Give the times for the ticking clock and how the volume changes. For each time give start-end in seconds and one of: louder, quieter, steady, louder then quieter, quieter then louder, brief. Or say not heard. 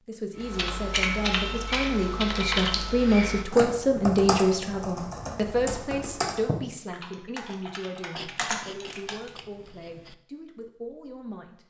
not heard.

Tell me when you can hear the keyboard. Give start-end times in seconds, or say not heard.
0.4-9.3.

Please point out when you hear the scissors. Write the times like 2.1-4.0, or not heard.
8.2-10.2.